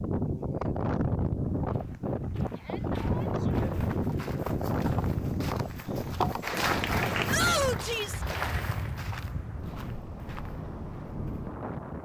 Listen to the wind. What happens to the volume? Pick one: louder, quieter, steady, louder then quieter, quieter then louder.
quieter.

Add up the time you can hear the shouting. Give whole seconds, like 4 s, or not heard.
2 s.